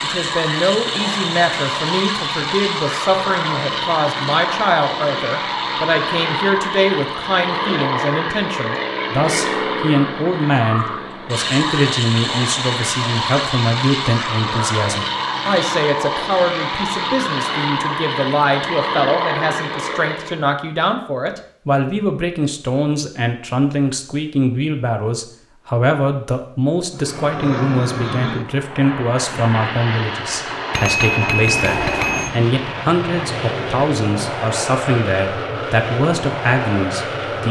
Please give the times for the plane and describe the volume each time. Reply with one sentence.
The plane can be heard from 0.0 to 20.4 s, at a steady volume; and from 26.9 to 37.4 s, at a steady volume.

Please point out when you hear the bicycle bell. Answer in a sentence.
You can hear the bicycle bell from 30.7 to 32.3 s.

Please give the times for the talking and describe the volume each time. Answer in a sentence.
You can hear the talking from 0.0 to 37.4 s, at a steady volume.